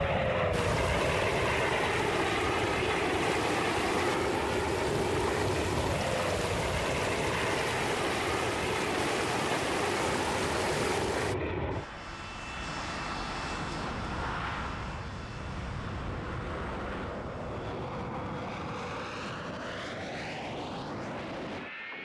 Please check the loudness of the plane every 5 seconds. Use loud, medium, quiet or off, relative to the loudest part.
loud, loud, medium, medium, medium.